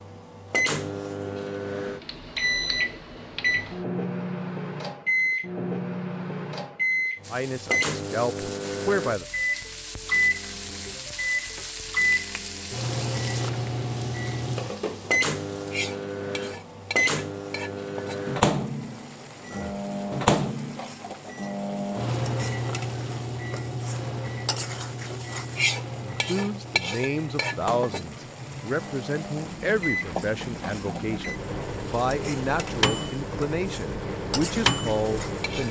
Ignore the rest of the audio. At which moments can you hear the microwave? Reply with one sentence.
The microwave can be heard from 0.0 to 35.6 s.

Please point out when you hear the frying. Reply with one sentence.
You can hear the frying from 7.2 to 35.6 s.